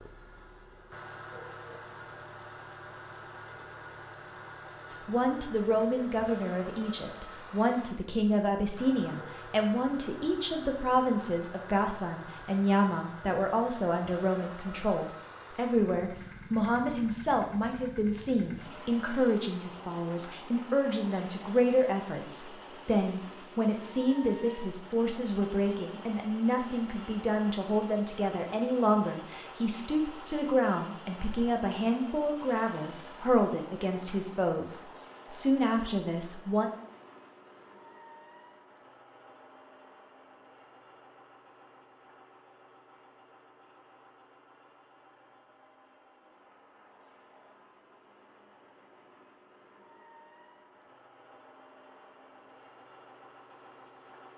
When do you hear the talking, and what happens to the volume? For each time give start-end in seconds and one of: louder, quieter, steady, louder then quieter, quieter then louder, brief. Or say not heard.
5.0-36.7 steady.